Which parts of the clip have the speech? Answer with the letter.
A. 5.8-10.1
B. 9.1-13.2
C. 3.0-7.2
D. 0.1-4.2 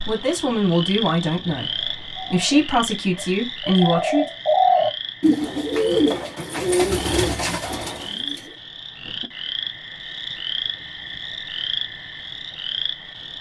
D.